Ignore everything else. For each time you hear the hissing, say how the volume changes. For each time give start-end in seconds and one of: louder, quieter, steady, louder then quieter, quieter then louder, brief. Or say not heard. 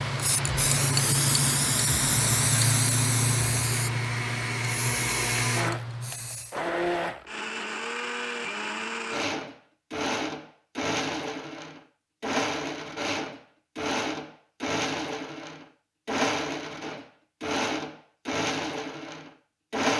0.0-6.5 quieter.